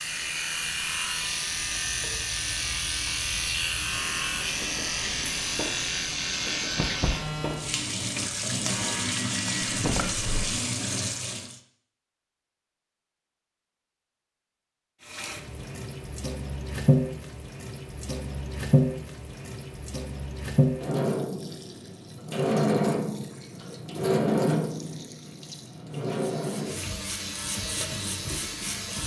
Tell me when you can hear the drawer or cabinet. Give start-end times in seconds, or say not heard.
9.7-10.6.